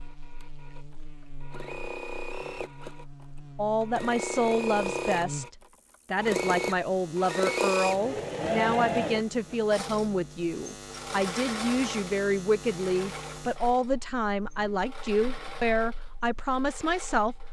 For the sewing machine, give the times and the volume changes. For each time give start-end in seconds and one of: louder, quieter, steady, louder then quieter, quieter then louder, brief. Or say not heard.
0.0-17.4 louder then quieter.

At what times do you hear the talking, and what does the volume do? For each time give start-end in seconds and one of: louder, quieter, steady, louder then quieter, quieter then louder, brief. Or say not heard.
3.5-17.4 steady.